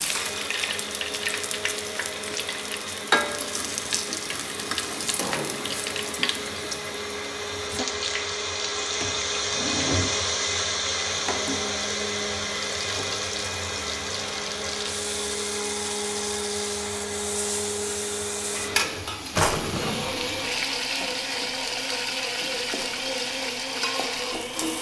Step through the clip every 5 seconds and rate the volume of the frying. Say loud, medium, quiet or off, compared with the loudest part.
loud, loud, medium, loud, loud.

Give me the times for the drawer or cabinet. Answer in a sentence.
The drawer or cabinet can be heard from 5.2 to 6.3 s, from 9.0 to 10.2 s and from 19.4 to 20.1 s.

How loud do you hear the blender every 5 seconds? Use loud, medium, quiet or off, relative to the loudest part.
medium, loud, loud, loud, medium.